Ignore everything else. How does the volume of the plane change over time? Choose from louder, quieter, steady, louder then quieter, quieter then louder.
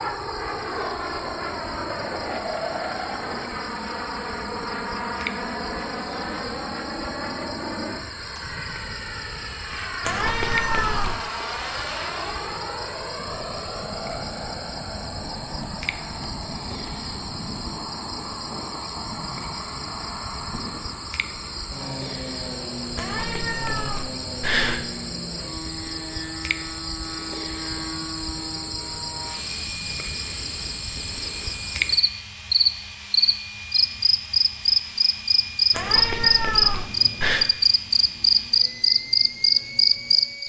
quieter.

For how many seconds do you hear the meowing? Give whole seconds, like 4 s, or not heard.
5 s.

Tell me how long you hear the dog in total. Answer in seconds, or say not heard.
not heard.